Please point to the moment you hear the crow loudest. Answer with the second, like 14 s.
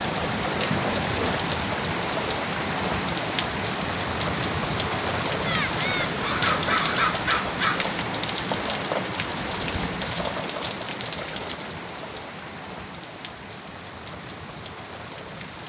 7 s.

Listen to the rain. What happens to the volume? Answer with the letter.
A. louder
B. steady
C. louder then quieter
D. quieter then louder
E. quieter
E.